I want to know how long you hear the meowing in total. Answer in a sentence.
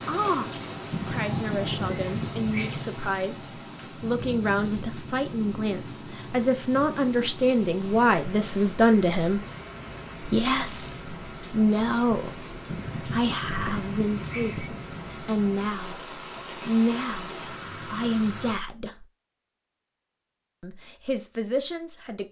The meowing can be heard for 4 seconds in total.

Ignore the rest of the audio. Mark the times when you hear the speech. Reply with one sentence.
The speech can be heard from 0.1 to 9.4 s, from 10.2 to 19.1 s and from 20.6 to 22.2 s.